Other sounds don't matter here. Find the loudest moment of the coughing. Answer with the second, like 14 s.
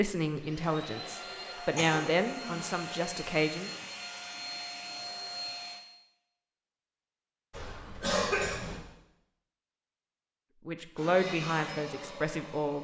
8 s.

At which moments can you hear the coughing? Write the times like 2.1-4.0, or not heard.
1.8-2.8, 7.5-8.8.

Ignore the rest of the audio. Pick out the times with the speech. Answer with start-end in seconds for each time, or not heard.
0.0-3.7, 10.7-12.8.